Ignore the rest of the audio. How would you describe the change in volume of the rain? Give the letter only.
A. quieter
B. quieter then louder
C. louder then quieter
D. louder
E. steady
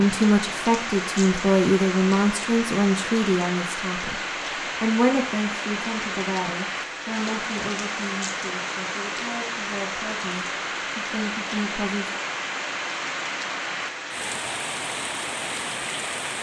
E.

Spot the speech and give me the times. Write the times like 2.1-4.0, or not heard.
0.0-4.2, 4.8-12.2.